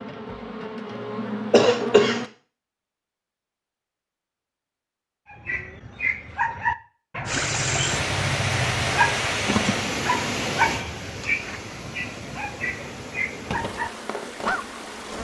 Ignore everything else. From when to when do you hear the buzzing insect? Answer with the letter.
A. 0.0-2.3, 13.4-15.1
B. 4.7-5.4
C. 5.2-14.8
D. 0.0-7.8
A.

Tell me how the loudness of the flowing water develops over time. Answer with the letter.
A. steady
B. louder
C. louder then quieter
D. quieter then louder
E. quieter
E.